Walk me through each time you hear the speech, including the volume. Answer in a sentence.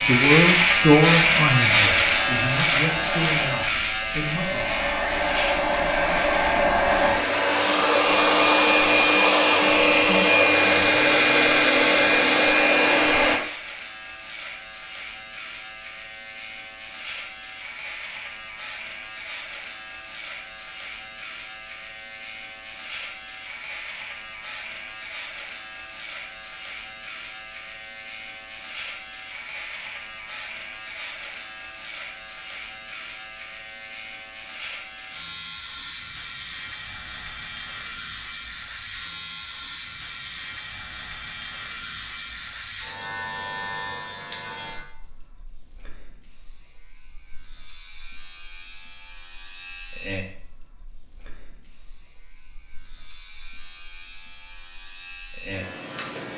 The speech can be heard from 0.1 to 4.6 s, getting quieter.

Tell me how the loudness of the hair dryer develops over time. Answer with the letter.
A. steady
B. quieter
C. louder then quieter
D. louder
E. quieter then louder
D.